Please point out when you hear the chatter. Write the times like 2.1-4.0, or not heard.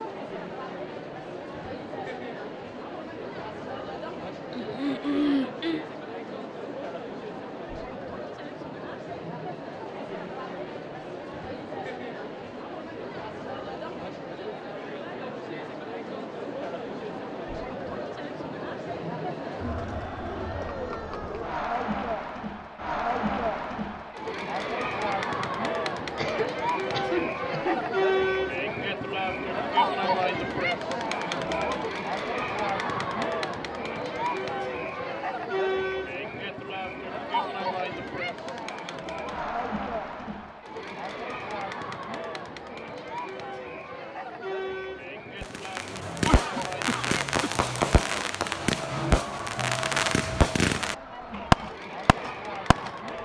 0.0-53.2.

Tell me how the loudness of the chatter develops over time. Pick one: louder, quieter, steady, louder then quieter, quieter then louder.
louder then quieter.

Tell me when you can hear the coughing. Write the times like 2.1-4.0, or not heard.
4.5-5.8, 26.1-27.9, 46.2-47.5.